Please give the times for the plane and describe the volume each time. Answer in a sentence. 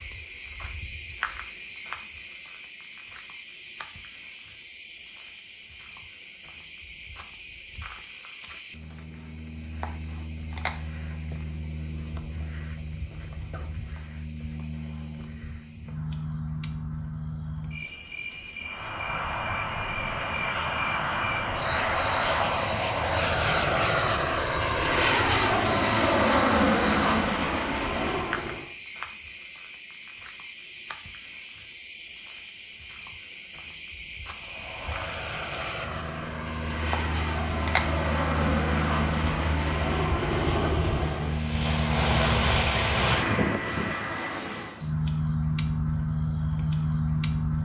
You can hear the plane from 18.6 to 28.7 s, getting louder; and from 34.4 to 44.8 s, getting louder.